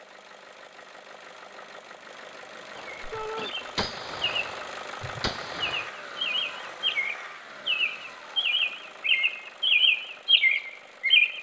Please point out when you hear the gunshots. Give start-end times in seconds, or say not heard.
2.8-5.9.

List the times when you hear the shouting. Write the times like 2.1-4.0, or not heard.
3.1-3.5.